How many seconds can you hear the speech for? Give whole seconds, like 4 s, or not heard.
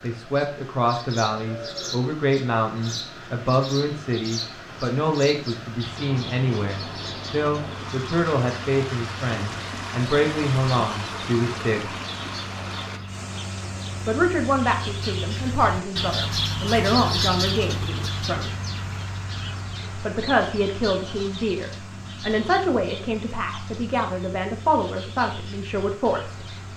23 s.